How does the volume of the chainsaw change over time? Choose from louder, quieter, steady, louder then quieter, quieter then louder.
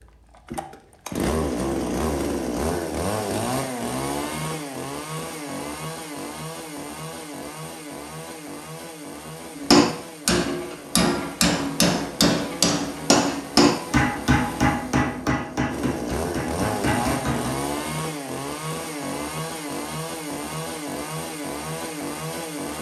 quieter then louder.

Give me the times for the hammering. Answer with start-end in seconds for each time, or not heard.
9.6-17.5.